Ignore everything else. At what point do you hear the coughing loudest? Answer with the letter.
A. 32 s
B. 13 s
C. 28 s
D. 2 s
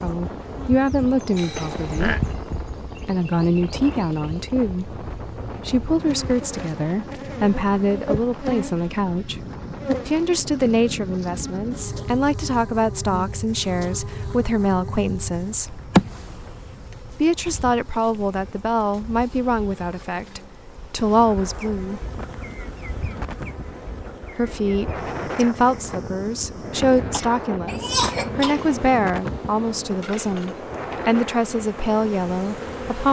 C.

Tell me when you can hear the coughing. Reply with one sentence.
You can hear the coughing from 1.4 to 2.2 s and from 26.8 to 28.7 s.